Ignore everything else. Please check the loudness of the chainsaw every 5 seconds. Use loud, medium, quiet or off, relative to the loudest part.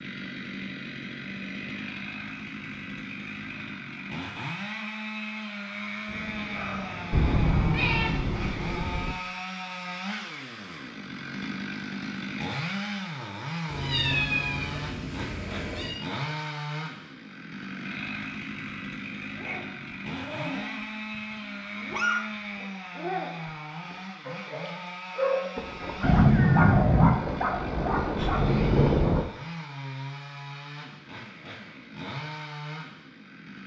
loud, loud, loud, loud, loud, medium, medium.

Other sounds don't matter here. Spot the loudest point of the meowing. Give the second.
26 s.